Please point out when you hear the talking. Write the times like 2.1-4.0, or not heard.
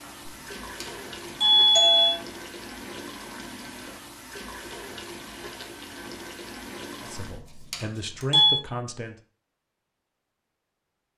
7.0-9.2.